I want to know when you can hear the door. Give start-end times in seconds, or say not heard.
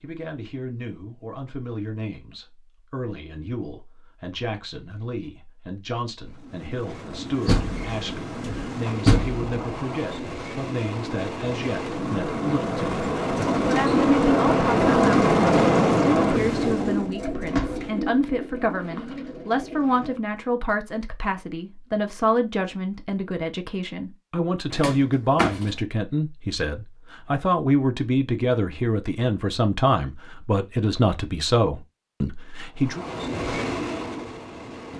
7.5-9.4, 17.2-17.9, 24.7-25.7.